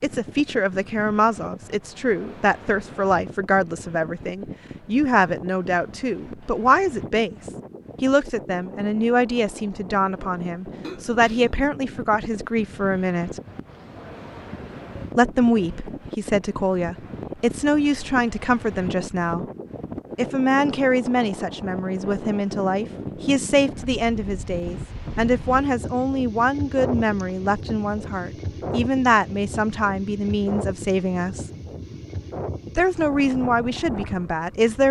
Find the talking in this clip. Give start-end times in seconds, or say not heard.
0.0-13.4, 15.2-19.4, 20.1-31.5, 32.8-34.8.